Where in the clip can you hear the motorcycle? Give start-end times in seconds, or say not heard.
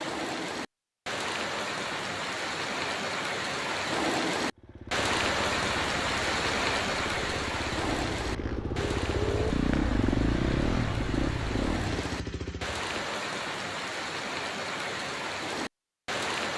4.5-13.0.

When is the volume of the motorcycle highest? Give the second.
10 s.